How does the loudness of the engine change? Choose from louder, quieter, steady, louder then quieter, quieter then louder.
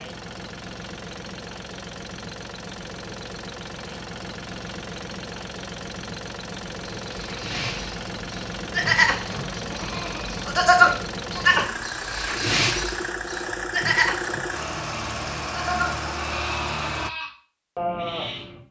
louder.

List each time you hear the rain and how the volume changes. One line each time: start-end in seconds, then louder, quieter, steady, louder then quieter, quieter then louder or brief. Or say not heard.
not heard.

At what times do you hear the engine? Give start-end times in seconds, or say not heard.
0.0-17.1.